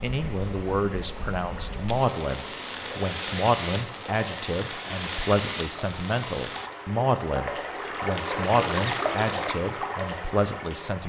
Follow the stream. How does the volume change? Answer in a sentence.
The loudness of the stream goes up.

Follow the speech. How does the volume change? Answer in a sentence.
The volume of the speech stays about the same.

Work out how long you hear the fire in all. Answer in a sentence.
You can hear the fire for 7 seconds altogether.